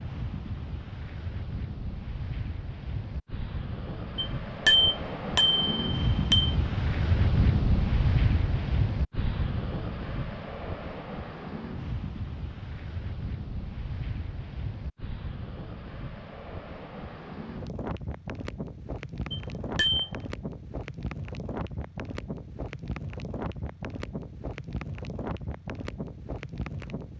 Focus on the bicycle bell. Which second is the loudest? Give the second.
5 s.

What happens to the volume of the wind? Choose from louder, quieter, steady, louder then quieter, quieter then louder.
louder then quieter.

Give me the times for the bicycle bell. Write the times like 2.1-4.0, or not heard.
4.2-6.5, 19.3-20.1.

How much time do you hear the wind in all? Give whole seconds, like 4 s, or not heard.
27 s.